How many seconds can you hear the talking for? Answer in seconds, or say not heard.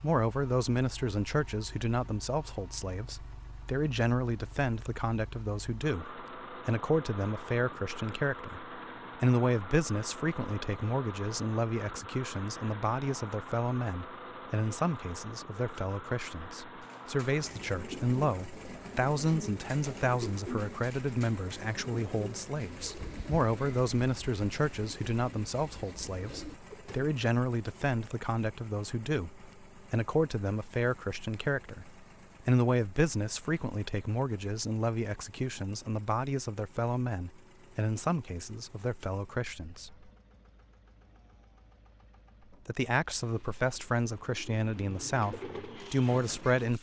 44 s.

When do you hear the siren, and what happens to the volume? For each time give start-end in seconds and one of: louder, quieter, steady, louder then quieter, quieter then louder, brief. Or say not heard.
not heard.